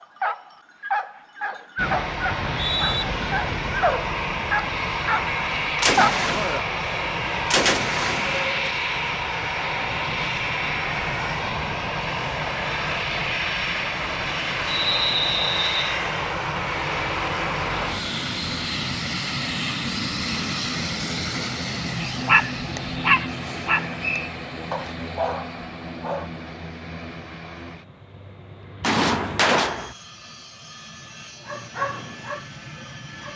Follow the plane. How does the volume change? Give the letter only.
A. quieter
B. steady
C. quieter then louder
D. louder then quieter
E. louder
A.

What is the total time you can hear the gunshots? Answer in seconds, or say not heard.
4 s.